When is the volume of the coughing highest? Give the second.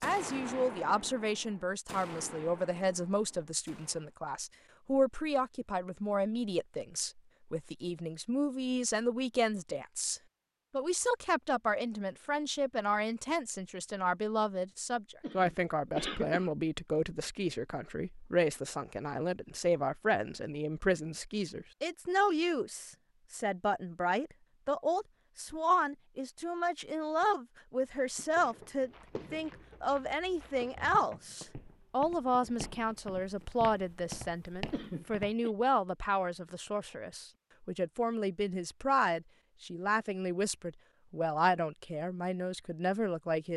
16 s.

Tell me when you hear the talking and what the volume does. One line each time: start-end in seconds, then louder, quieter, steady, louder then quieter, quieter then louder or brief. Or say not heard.
0.0-43.5 steady.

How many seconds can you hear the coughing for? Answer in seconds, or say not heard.
2 s.